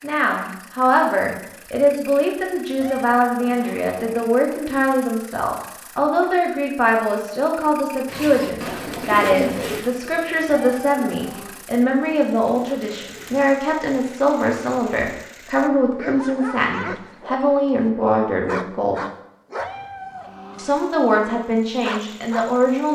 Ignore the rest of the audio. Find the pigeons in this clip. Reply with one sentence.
You can hear the pigeons from 8.1 to 13.5 s.